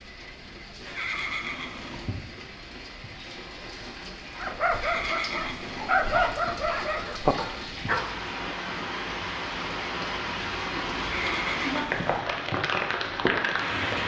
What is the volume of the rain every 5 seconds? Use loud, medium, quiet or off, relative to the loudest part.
quiet, medium, loud.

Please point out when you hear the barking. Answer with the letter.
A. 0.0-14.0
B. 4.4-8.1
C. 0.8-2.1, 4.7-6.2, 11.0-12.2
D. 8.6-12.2
B.